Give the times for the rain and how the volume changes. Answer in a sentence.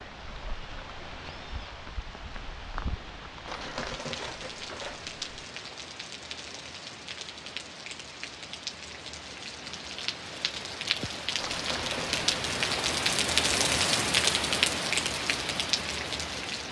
The rain can be heard from 0.0 to 16.6 s, getting louder.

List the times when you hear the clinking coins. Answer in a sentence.
You can hear the clinking coins from 3.5 to 5.5 s and from 11.4 to 12.3 s.